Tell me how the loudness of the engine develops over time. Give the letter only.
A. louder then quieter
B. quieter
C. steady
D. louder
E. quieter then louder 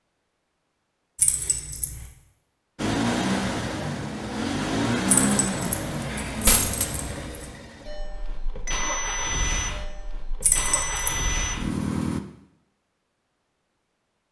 E.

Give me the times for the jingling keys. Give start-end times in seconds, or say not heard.
1.1-2.0, 5.0-7.5, 10.4-11.2.